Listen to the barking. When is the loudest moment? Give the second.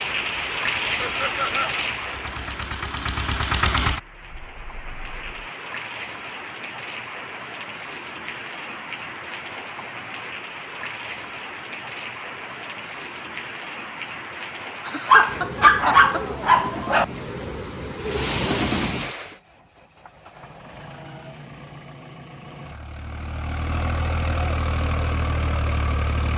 16 s.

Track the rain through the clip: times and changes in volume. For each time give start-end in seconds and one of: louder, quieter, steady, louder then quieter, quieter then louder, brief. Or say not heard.
0.0-19.4 quieter then louder.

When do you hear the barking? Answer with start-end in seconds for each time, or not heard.
15.1-17.1.